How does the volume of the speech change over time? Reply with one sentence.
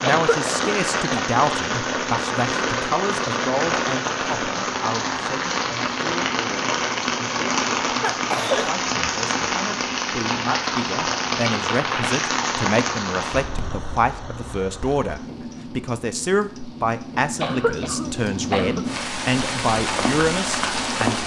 The loudness of the speech goes down, then up.